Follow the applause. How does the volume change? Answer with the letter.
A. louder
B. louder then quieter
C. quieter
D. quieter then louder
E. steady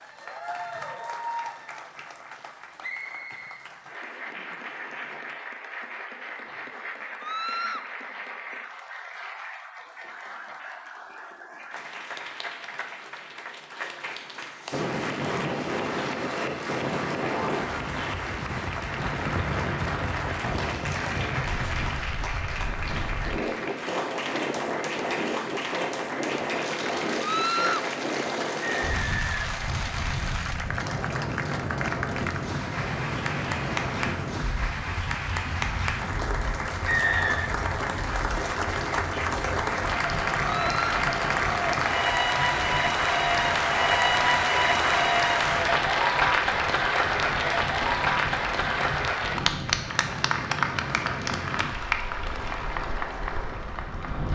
A.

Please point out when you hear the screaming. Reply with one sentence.
You can hear the screaming from 7.2 to 7.8 s, from 27.2 to 27.9 s and from 40.5 to 41.0 s.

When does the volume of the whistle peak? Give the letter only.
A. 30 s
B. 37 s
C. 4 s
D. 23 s
B.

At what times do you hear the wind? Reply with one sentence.
The wind can be heard from 14.7 to 54.3 s.